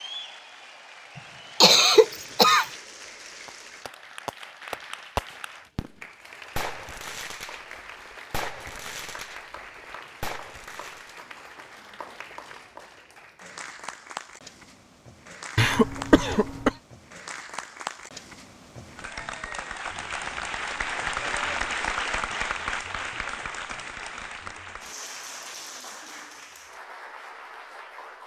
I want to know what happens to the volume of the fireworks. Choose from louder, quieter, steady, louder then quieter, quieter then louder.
quieter.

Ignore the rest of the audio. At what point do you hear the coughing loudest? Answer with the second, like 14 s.
2 s.